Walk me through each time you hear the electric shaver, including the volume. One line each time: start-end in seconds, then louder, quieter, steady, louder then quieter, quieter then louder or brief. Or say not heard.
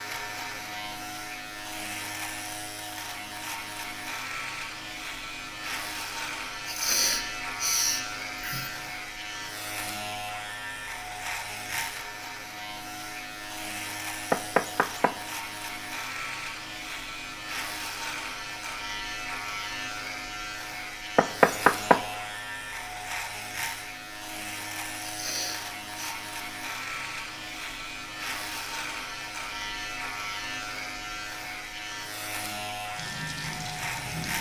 0.0-34.3 steady.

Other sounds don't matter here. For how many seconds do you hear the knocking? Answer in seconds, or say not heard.
2 s.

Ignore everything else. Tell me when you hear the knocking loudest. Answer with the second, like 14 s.
22 s.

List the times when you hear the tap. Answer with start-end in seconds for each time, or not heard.
32.9-34.3.